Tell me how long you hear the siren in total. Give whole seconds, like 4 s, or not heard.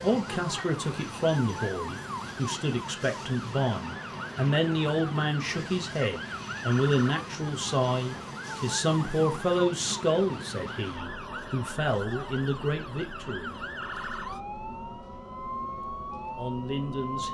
17 s.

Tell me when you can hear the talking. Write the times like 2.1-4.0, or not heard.
0.0-13.6, 16.4-17.2.